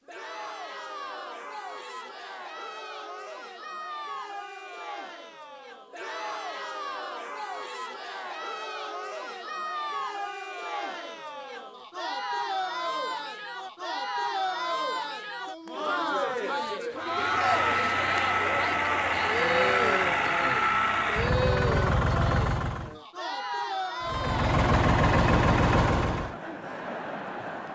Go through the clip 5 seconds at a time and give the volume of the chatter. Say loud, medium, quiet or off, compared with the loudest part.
medium, medium, loud, loud, loud, medium.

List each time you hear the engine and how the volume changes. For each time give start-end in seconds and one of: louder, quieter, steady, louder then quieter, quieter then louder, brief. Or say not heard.
16.9-22.9 steady
24.0-26.4 brief.